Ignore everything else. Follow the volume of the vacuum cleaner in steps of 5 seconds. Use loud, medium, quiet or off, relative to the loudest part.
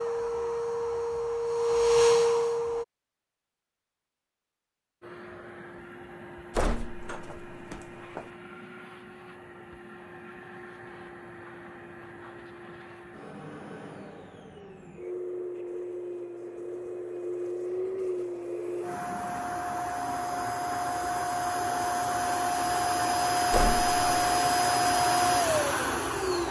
loud, quiet, quiet, medium, loud, loud.